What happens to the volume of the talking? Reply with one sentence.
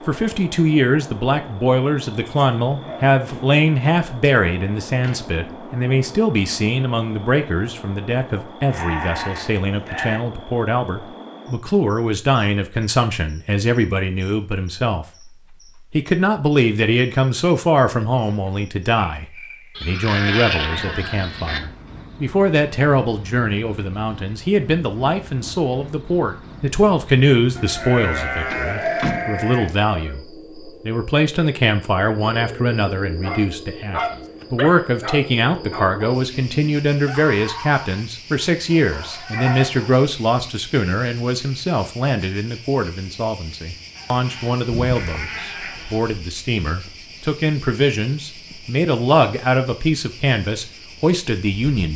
The volume of the talking stays about the same.